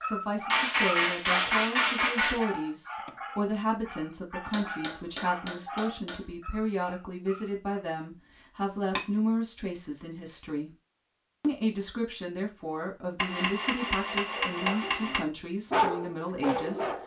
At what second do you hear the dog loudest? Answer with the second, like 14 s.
16 s.